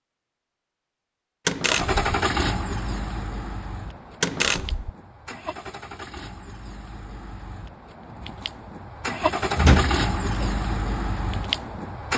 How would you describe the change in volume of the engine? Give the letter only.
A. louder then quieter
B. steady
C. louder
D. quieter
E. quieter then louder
E.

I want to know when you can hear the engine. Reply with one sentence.
You can hear the engine from 1.6 to 12.1 s.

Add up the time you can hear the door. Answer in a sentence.
You can hear the door for 2 seconds altogether.